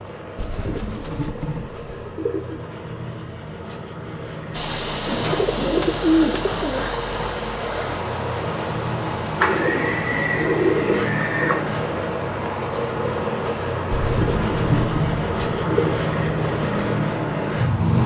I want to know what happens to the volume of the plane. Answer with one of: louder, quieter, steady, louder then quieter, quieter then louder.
louder.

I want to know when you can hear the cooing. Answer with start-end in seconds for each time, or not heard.
0.3-2.6, 5.0-7.0, 9.4-11.7, 13.9-15.9.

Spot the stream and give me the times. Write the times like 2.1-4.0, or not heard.
4.5-18.0.